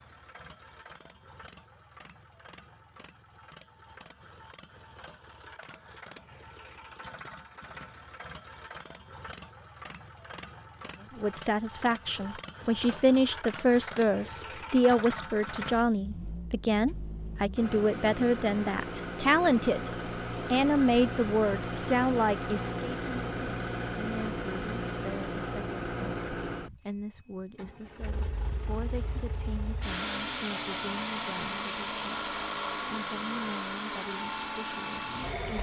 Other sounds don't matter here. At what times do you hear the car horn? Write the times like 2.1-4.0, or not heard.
not heard.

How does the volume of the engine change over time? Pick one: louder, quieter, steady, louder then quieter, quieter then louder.
louder.